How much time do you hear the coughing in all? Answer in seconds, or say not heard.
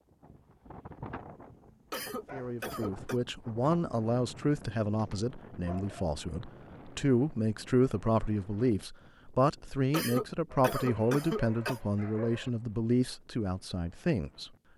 3 s.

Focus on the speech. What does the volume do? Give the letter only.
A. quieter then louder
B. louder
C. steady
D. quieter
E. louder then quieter
C.